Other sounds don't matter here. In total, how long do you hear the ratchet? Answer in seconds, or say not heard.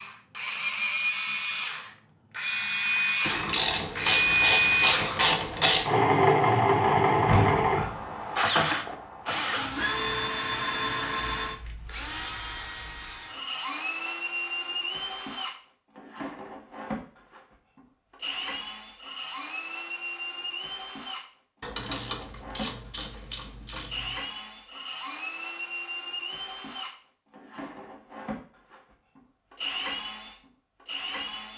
7 s.